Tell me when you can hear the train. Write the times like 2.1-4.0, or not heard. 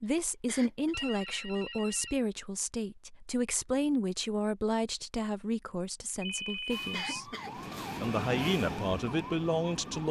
7.3-10.0.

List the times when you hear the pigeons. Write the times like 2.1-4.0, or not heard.
not heard.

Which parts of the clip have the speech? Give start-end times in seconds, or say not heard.
0.0-7.3, 8.0-10.0.